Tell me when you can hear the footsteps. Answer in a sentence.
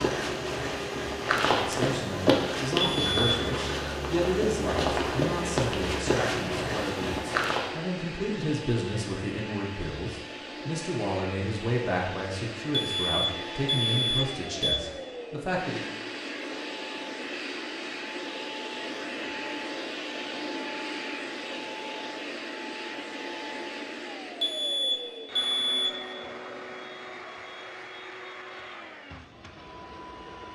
The footsteps can be heard from 0.0 to 7.7 s.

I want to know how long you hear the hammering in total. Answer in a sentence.
You can't hear the hammering here.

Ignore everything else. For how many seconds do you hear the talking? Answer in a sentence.
The talking can be heard for 14 seconds in total.